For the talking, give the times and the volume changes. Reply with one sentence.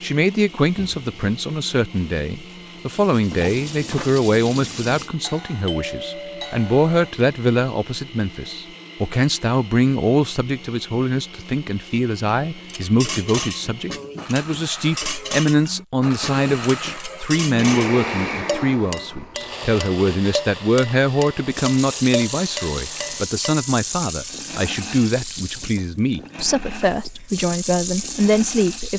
The talking can be heard from 0.0 to 28.9 s, at a steady volume.